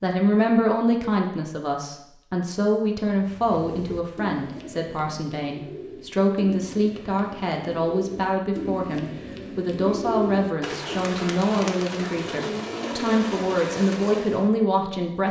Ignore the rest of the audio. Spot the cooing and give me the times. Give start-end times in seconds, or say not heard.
3.1-14.4.